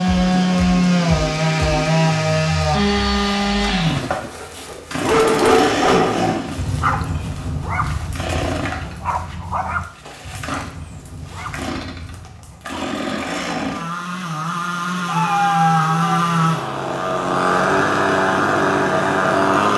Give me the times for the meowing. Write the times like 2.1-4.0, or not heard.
15.1-16.1.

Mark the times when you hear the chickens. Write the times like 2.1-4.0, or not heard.
not heard.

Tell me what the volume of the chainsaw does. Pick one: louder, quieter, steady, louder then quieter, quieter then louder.
quieter then louder.